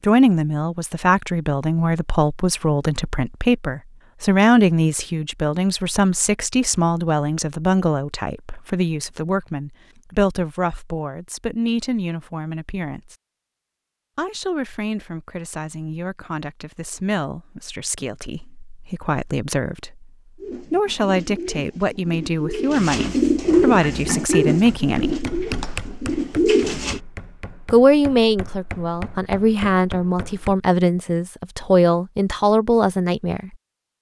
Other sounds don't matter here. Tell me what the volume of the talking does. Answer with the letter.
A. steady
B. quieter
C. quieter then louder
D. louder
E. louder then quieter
C.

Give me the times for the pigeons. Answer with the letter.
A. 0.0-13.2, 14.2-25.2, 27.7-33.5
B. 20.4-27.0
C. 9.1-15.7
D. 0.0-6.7
B.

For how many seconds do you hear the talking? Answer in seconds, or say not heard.
30 s.